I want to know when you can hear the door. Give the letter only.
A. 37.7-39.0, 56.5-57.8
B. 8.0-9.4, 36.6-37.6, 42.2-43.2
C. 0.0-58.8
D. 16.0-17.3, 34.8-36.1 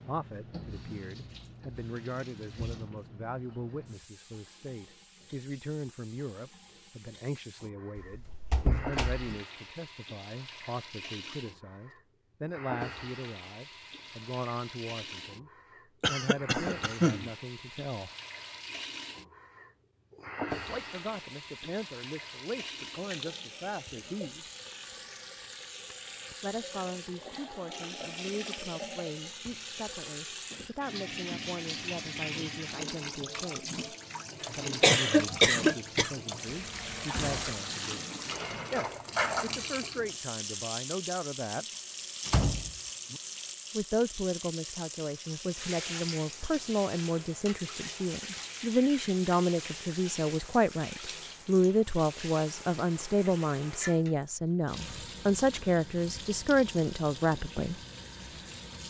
B.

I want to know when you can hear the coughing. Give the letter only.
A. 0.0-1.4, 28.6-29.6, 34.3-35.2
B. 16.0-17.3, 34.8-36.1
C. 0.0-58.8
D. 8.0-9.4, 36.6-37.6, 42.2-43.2
B.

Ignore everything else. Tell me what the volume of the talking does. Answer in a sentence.
The volume of the talking goes up.